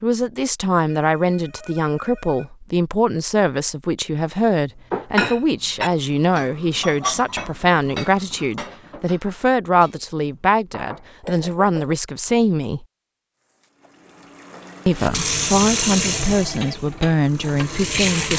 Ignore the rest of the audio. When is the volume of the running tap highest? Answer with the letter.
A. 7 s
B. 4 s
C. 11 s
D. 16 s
D.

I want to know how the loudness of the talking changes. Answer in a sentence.
The loudness of the talking stays about the same.